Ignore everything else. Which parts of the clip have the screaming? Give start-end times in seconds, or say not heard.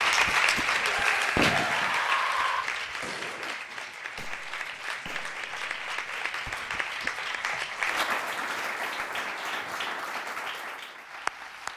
0.8-2.6.